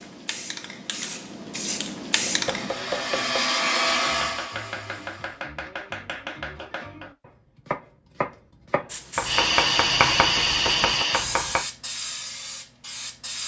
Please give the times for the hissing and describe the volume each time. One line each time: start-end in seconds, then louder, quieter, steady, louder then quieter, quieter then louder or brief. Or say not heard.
0.0-2.8 brief
8.8-13.4 quieter.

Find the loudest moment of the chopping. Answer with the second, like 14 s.
10 s.